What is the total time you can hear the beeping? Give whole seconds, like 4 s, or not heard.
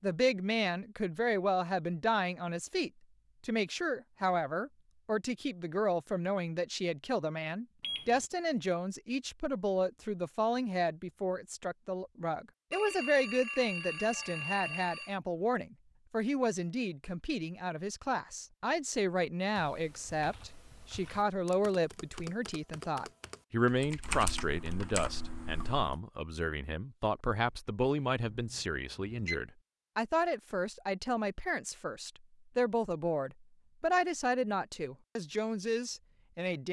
4 s.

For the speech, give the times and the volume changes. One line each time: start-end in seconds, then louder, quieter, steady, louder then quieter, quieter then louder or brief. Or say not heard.
0.0-36.6 steady.